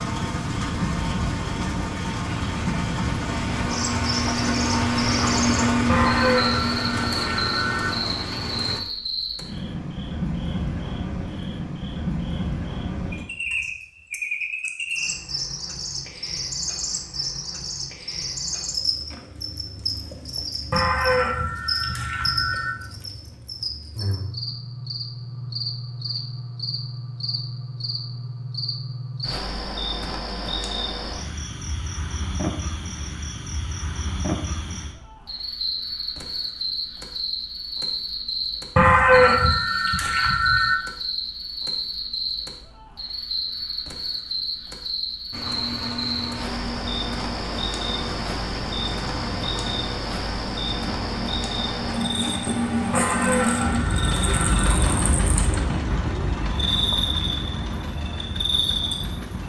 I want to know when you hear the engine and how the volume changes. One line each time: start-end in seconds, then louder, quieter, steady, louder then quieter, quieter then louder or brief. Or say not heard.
0.0-8.8 louder then quieter
45.3-59.4 louder then quieter.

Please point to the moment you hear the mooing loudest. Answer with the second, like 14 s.
39 s.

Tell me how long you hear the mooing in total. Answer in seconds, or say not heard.
8 s.